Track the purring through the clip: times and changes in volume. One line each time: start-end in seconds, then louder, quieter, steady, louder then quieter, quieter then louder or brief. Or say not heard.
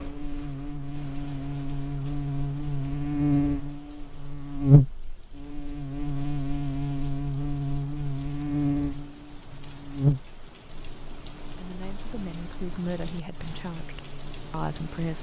not heard.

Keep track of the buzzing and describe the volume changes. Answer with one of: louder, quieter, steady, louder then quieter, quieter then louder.
louder then quieter.